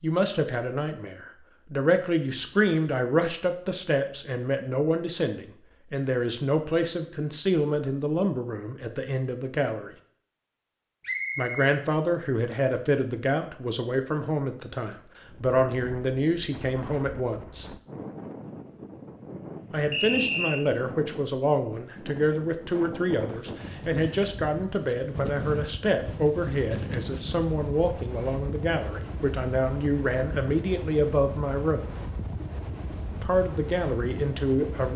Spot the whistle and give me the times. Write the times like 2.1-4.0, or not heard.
11.0-11.7, 19.9-20.6.